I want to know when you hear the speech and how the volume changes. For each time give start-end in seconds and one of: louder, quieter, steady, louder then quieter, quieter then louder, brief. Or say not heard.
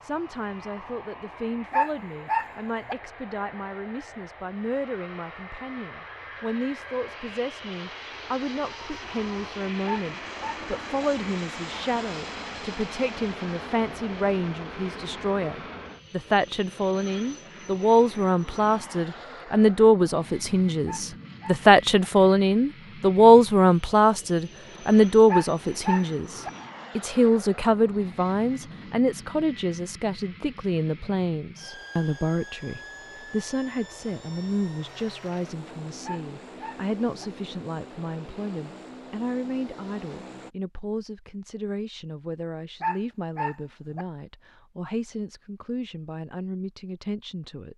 0.0-47.7 louder then quieter.